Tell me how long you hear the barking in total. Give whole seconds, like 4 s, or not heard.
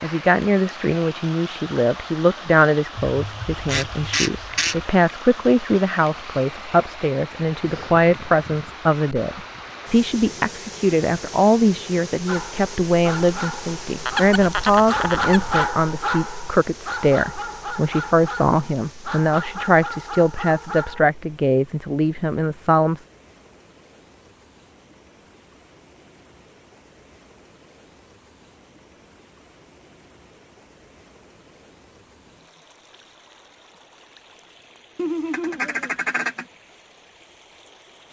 9 s.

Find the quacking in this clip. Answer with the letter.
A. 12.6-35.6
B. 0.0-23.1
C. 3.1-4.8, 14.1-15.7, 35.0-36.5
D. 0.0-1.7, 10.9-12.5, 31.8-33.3
C.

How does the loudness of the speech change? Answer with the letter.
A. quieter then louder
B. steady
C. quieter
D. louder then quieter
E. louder
B.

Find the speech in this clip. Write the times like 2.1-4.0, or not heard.
0.0-23.1.